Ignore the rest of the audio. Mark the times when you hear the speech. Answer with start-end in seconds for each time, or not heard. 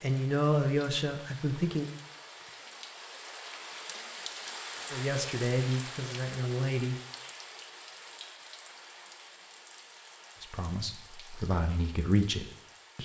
0.0-2.0, 4.9-7.0, 10.4-12.9.